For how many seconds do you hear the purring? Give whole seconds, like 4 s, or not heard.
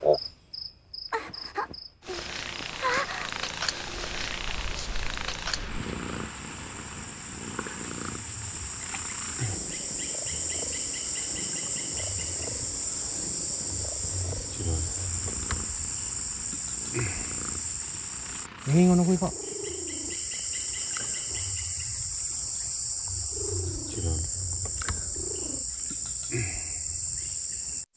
22 s.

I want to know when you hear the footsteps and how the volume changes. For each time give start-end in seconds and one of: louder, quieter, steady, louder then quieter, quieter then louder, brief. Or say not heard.
not heard.